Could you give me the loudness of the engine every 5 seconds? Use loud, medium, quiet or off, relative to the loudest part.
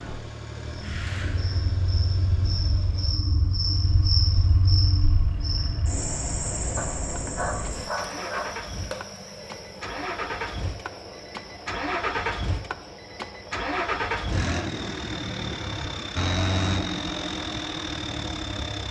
quiet, medium, loud, loud.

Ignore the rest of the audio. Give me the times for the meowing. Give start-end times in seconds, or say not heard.
not heard.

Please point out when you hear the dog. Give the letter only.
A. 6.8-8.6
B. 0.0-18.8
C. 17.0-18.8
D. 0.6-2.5
A.